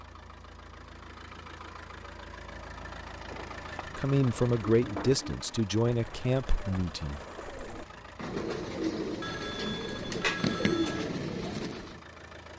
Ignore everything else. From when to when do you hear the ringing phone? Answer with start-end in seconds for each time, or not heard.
9.2-11.2.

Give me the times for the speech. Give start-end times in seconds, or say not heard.
4.0-7.2.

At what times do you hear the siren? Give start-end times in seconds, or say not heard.
not heard.